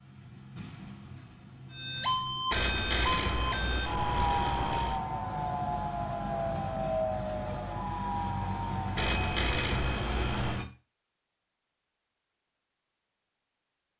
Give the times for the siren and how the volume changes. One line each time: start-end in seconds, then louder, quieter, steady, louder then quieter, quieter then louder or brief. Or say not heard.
1.7-9.2 quieter.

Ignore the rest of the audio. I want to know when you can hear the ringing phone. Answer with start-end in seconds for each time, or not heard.
2.5-5.0, 8.9-10.6.